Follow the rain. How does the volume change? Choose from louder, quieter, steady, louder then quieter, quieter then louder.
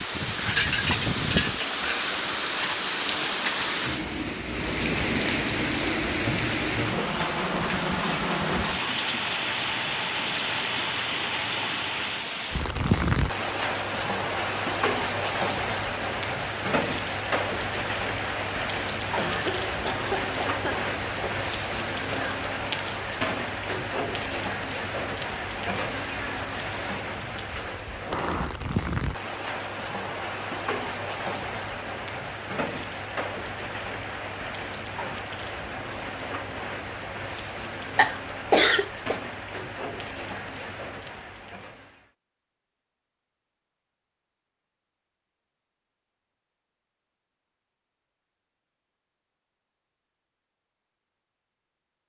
quieter.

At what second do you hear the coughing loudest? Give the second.
39 s.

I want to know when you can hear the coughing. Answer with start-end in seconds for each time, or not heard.
19.1-21.4, 38.0-39.1.